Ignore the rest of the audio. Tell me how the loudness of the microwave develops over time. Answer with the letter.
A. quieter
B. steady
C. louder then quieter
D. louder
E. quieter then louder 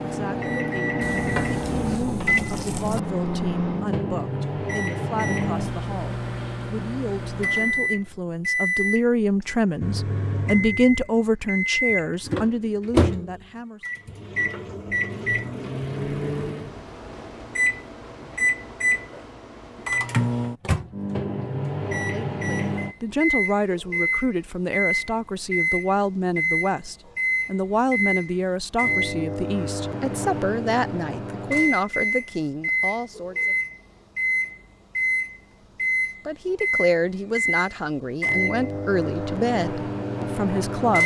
B.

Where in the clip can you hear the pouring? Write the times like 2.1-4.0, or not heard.
1.0-3.0.